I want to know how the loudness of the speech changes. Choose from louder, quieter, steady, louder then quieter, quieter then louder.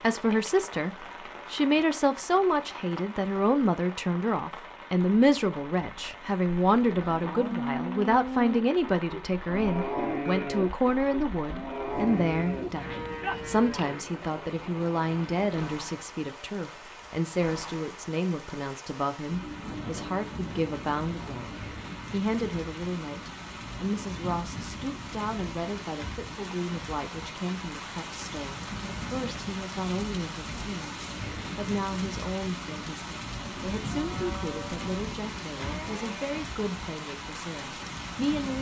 quieter.